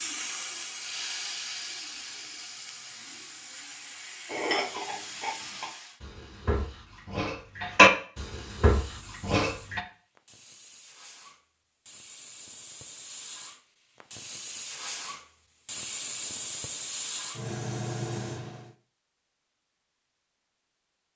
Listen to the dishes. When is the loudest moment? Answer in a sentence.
The volume of the dishes peaks at 8 seconds.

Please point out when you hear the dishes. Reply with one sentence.
The dishes can be heard from 4.2 to 9.8 s.